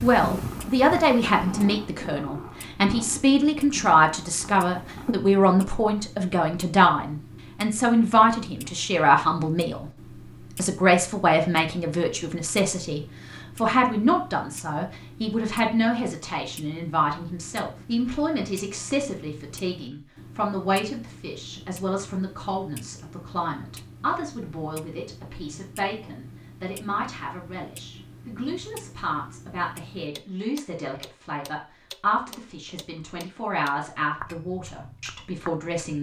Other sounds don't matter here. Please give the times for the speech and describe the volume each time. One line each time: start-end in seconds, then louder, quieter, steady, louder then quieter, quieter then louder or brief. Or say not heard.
0.0-9.9 steady
10.6-35.9 quieter.